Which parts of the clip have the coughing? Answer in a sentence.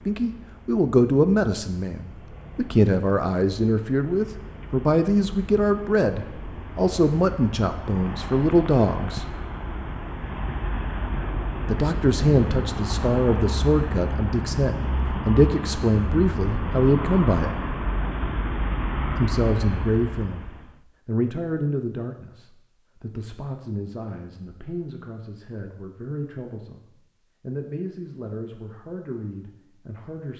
You can't hear the coughing here.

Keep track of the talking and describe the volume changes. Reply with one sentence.
The loudness of the talking goes down.